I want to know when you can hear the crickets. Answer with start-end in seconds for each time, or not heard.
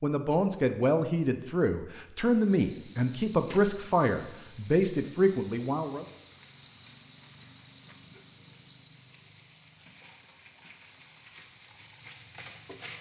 2.3-12.9.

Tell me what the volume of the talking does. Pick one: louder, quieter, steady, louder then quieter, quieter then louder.
steady.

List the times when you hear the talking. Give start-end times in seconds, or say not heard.
0.0-6.0.